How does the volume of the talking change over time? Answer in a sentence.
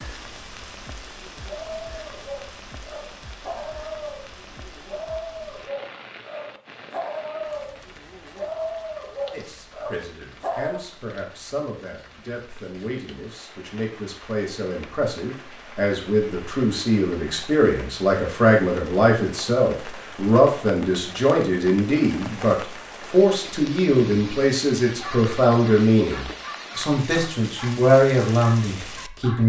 The loudness of the talking goes up.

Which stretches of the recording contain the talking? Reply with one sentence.
You can hear the talking from 9.3 to 29.4 s.